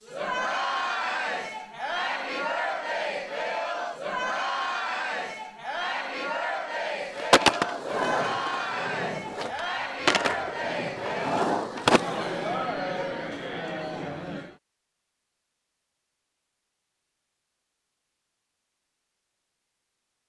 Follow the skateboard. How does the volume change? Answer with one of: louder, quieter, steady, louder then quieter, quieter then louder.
quieter then louder.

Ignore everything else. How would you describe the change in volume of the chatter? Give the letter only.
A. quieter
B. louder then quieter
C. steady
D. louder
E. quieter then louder
C.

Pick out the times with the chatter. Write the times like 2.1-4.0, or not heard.
0.0-14.6.